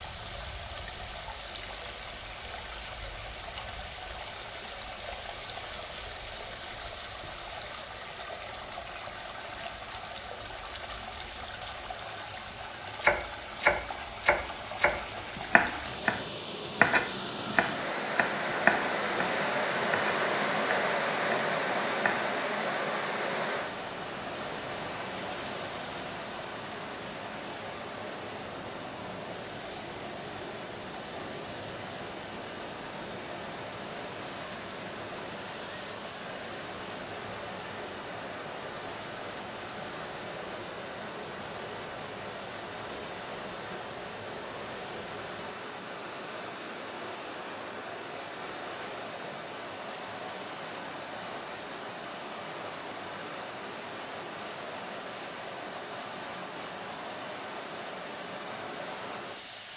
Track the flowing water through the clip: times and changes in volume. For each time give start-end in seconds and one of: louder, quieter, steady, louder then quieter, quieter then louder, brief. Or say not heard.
0.0-59.7 louder then quieter.